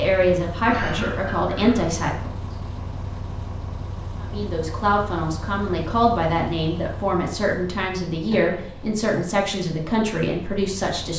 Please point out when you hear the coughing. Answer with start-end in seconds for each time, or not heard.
0.7-1.9, 8.3-9.2.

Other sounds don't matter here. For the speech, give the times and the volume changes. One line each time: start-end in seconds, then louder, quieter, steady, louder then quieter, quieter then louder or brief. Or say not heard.
0.0-2.4 brief
4.2-11.1 steady.